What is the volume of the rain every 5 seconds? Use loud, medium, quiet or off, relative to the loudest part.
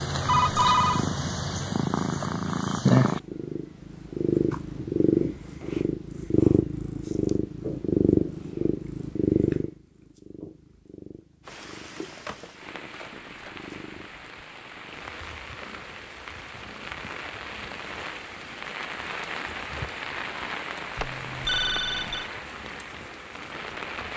off, off, medium, loud, loud.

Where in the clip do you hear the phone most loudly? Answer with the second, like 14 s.
1 s.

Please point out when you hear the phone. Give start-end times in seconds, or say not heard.
0.2-1.1, 12.2-13.7, 20.9-22.3.